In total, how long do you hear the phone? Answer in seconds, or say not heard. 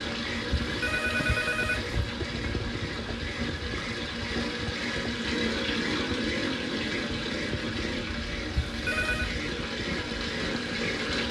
2 s.